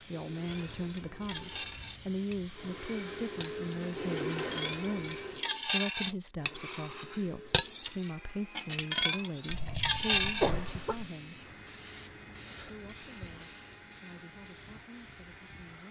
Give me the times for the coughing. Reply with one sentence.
The coughing can be heard from 9.4 to 11.1 s.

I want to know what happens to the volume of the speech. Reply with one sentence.
The loudness of the speech goes down.